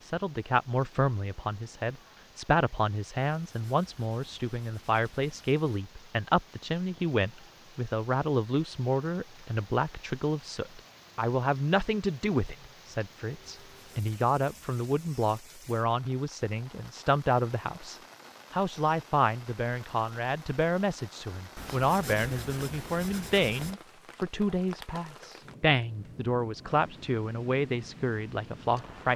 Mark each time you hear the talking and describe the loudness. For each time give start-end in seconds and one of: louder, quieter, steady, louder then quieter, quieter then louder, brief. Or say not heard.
0.0-29.1 steady.